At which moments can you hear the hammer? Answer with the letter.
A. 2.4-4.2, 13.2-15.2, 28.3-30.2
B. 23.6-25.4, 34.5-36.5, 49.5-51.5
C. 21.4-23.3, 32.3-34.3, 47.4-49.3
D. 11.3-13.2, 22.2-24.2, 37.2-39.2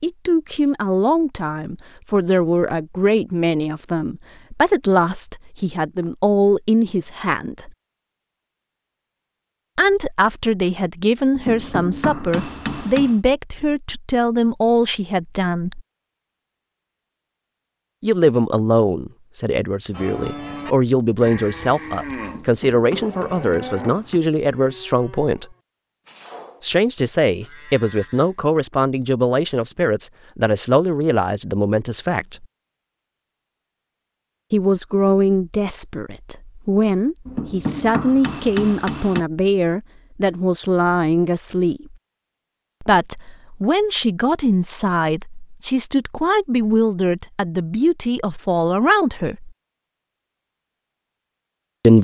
D.